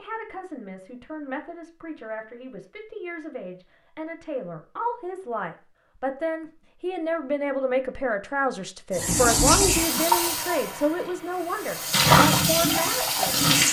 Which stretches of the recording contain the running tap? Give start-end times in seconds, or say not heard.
8.9-13.6.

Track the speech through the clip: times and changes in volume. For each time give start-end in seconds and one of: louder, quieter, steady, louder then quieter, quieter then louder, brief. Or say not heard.
0.0-13.3 louder.